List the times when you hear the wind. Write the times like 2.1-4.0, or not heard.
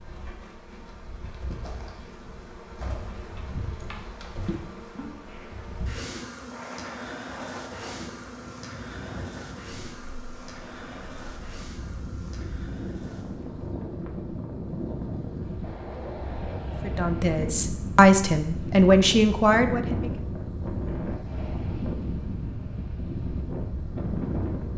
6.5-24.7.